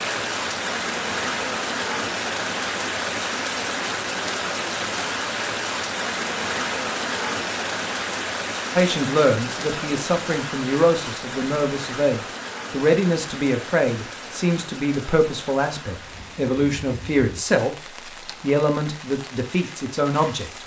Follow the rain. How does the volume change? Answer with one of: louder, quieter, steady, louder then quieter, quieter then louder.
quieter.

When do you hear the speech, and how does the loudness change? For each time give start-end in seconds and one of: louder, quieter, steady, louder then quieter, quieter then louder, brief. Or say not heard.
8.8-17.8 steady
18.4-20.6 brief.